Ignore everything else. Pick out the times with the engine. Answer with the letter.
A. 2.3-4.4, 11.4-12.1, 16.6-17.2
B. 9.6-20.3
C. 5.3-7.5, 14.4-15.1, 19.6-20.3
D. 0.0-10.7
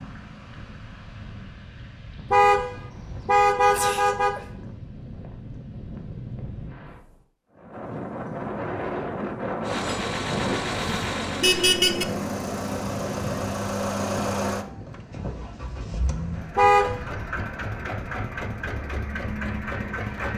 B.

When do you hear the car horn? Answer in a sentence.
The car horn can be heard from 2.3 to 4.4 s, from 11.4 to 12.1 s and from 16.6 to 17.2 s.